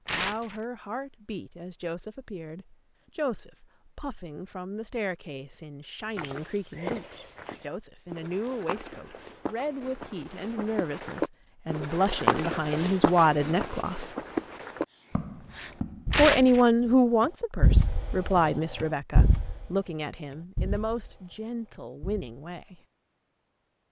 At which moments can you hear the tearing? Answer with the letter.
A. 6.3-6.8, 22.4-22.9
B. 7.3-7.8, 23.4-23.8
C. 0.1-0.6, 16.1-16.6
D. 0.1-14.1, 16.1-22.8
C.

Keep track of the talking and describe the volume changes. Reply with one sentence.
The loudness of the talking goes up, then down.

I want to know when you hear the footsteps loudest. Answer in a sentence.
The loudest moment of the footsteps is at 12 seconds.